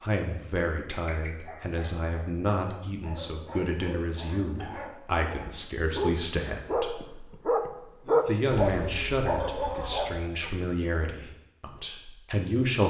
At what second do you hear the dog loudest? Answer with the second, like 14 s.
8 s.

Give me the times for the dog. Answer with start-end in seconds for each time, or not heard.
0.8-10.6.